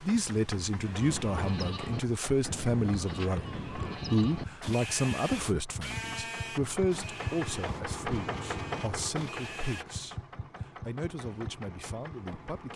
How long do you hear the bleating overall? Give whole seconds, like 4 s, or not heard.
9 s.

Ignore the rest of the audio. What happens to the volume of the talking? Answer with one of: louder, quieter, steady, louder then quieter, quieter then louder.
quieter.